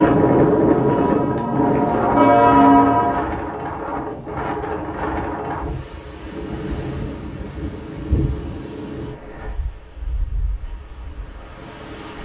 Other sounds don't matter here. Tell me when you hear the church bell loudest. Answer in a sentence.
The loudest moment of the church bell is at 3 seconds.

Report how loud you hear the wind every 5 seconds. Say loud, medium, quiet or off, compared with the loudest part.
loud, medium, quiet.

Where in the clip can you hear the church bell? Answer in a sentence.
You can hear the church bell from 0.0 to 3.3 s.